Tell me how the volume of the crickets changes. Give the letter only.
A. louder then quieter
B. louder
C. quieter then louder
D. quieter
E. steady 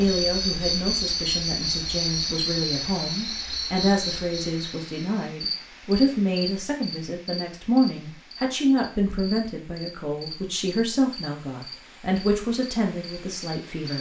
D.